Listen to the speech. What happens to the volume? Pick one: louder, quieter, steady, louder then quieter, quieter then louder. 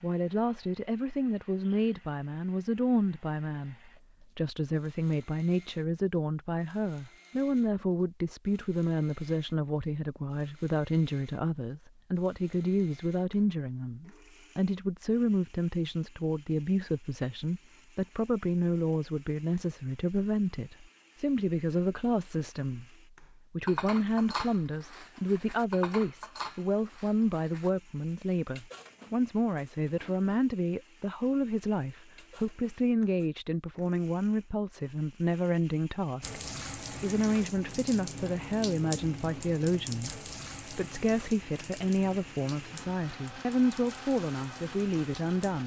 steady.